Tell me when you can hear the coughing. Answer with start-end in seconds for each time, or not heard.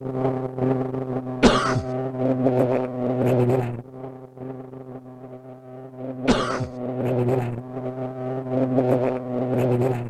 1.4-1.9, 6.2-6.7.